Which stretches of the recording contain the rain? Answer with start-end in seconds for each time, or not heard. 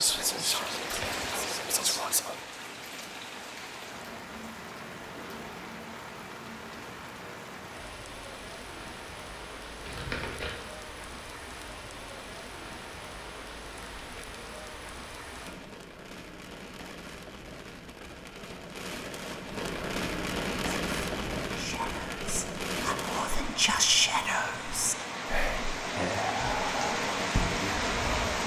0.0-28.4.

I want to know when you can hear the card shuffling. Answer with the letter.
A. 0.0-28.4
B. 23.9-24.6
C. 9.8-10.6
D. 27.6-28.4
C.